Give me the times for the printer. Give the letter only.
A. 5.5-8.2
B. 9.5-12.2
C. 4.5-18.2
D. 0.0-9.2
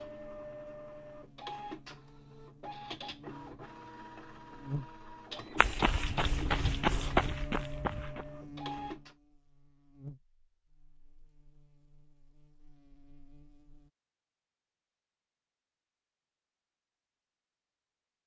D.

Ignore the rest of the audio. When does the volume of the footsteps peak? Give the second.
7 s.